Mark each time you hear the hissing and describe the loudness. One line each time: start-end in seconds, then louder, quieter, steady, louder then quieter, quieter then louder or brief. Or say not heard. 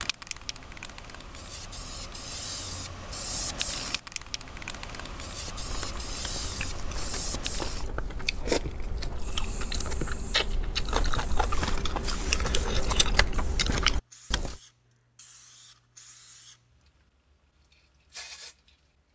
0.0-18.9 quieter.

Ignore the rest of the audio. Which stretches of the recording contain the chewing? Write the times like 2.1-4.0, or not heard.
5.4-14.6.